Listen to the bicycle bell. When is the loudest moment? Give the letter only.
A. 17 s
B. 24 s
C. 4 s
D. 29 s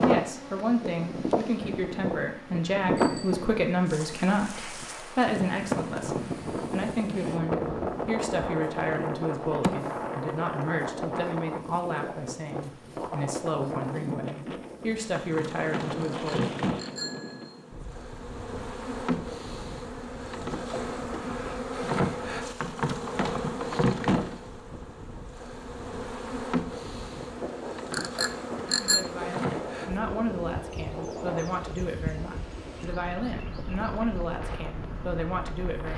D.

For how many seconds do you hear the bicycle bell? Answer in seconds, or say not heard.
3 s.